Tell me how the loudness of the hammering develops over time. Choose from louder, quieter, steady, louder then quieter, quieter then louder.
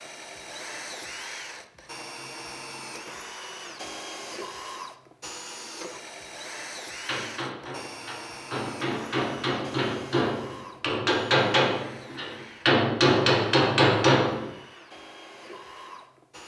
louder.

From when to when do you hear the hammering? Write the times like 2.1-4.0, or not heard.
7.0-14.3.